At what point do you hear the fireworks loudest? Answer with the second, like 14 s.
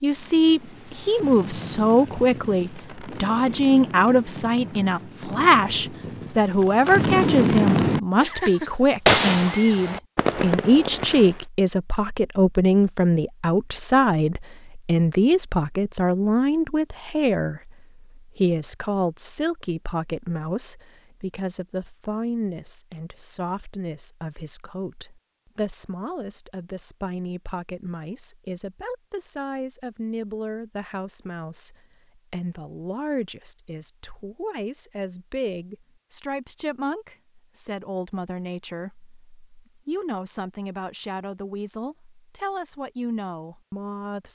9 s.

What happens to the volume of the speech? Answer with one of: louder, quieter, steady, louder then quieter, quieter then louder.
quieter.